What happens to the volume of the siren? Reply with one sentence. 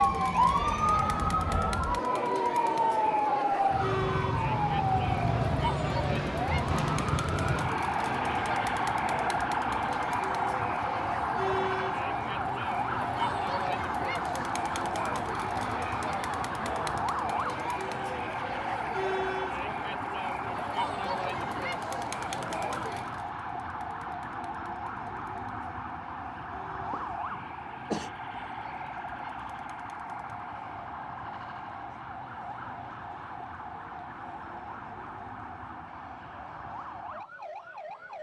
The loudness of the siren goes down.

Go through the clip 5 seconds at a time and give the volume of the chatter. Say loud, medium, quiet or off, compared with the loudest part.
loud, loud, loud, loud, loud, quiet, quiet, quiet.